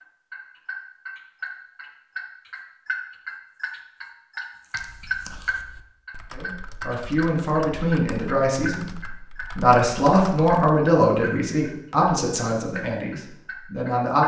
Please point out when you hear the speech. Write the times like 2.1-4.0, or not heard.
6.3-14.2.